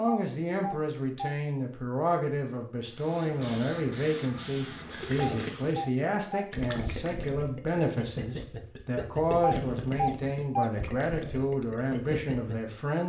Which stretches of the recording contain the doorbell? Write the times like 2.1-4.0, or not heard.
0.1-1.4, 5.2-6.5, 9.4-10.7.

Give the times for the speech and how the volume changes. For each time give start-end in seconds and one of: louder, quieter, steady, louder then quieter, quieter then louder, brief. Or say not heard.
0.0-13.0 steady.